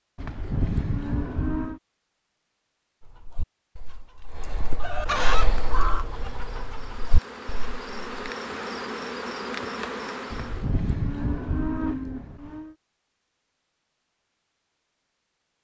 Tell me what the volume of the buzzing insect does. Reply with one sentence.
The volume of the buzzing insect goes up.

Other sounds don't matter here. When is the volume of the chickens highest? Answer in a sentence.
The volume of the chickens peaks at 5 seconds.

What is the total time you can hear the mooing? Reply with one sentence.
You can hear the mooing for 4 seconds altogether.